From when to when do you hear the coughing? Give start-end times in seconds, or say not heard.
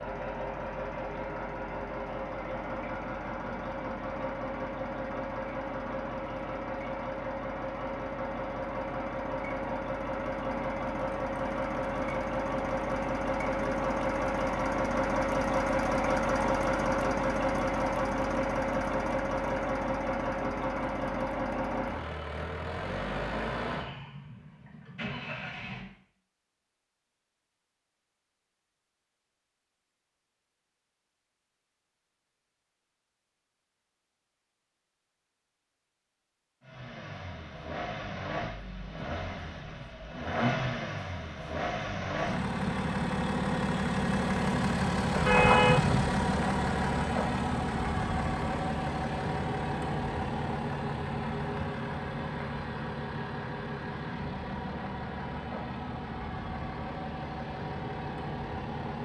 not heard.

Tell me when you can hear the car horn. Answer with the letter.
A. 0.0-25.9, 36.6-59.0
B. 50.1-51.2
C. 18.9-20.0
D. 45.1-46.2
D.